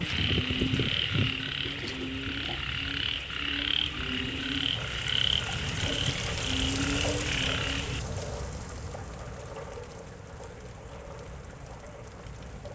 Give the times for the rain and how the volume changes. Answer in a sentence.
The rain can be heard from 0.0 to 12.7 s, getting louder then quieter.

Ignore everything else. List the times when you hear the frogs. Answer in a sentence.
The frogs can be heard from 0.0 to 8.0 s.